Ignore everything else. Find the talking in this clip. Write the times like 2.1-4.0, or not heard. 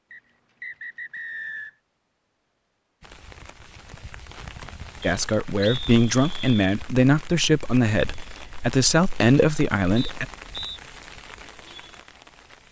5.0-10.2.